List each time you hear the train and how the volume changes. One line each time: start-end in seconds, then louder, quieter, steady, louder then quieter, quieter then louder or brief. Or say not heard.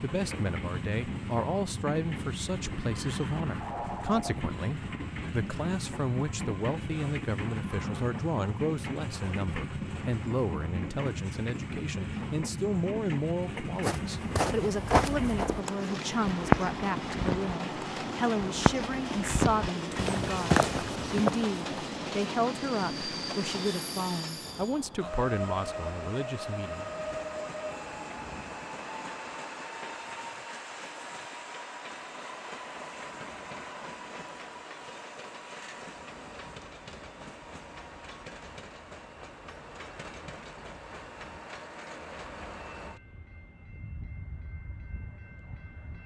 0.0-46.0 quieter.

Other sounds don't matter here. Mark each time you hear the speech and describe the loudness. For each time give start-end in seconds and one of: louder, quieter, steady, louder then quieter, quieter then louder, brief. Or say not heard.
0.0-26.9 steady.